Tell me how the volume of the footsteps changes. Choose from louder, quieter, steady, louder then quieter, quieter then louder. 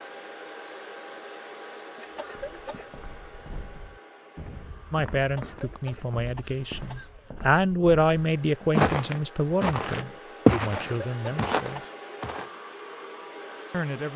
louder.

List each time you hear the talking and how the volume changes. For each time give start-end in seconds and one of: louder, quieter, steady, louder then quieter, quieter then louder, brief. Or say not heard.
4.9-11.8 louder then quieter
13.7-14.1 brief.